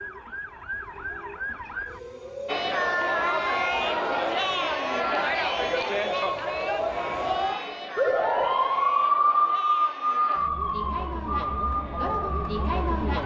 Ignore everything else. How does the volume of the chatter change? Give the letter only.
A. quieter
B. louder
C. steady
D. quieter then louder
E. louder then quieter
D.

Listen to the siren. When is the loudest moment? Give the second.
9 s.